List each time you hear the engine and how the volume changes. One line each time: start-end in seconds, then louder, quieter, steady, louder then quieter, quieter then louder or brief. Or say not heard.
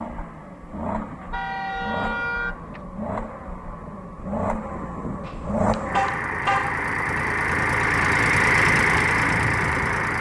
0.0-10.1 louder.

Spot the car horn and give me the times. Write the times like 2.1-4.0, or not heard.
1.3-2.9, 5.2-6.8.